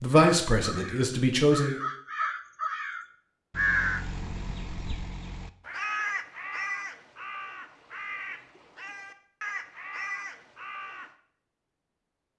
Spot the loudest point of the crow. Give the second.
4 s.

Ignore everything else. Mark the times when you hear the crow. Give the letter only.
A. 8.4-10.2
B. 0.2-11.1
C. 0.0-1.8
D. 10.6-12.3
B.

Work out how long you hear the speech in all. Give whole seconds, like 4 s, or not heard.
2 s.